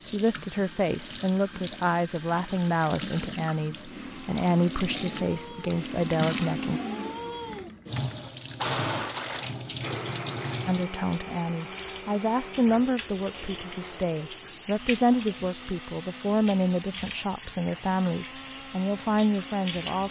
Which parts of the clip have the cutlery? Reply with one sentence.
The cutlery can't be heard in this clip.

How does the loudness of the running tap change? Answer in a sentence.
The loudness of the running tap goes up.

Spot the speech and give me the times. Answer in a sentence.
The speech can be heard from 0.0 to 6.8 s and from 10.7 to 20.0 s.